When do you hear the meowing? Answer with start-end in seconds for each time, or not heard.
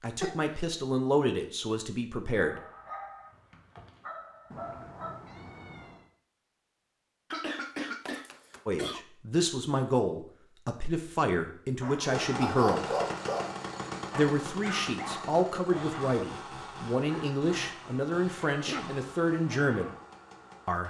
4.5-6.1.